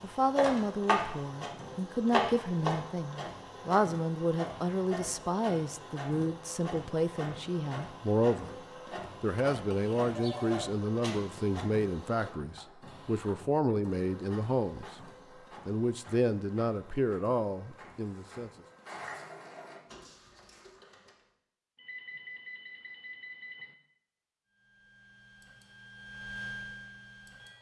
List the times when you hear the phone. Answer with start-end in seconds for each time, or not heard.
9.5-10.8, 21.8-23.8.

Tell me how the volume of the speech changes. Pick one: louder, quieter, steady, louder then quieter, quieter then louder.
steady.